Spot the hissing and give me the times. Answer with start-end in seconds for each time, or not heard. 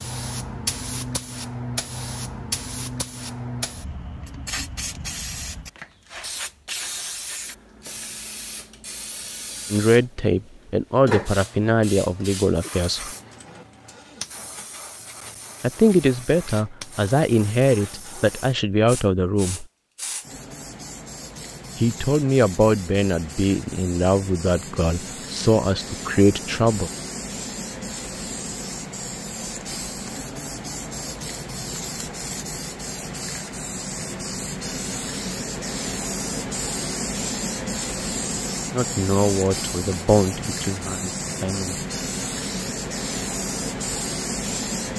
0.0-44.9.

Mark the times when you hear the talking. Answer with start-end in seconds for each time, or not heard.
9.7-13.1, 15.6-19.6, 21.8-26.9, 38.7-41.9.